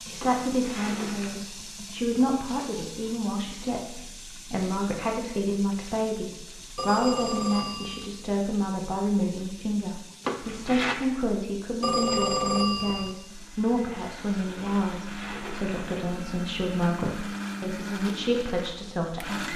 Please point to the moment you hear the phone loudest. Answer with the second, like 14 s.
12 s.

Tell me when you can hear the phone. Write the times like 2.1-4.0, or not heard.
6.8-8.1, 11.8-13.2.